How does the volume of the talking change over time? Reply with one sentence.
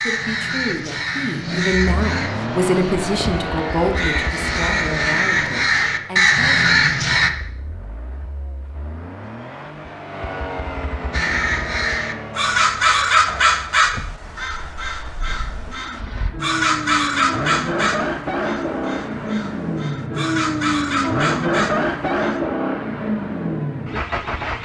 The volume of the talking goes up, then down.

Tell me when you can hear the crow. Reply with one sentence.
The crow can be heard from 0.0 to 7.3 s and from 11.1 to 22.4 s.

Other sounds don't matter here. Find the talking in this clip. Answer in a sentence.
The talking can be heard from 0.0 to 6.8 s.